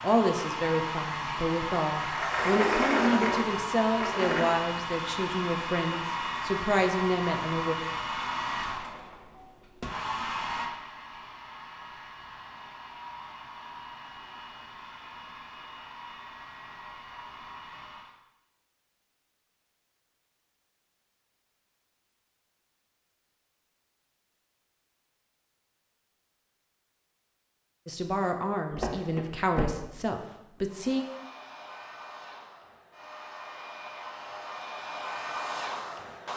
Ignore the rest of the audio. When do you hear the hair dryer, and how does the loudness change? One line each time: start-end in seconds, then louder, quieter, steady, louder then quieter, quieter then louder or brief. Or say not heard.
0.0-18.1 quieter
30.6-36.3 louder.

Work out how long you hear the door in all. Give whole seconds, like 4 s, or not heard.
4 s.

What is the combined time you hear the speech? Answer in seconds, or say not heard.
11 s.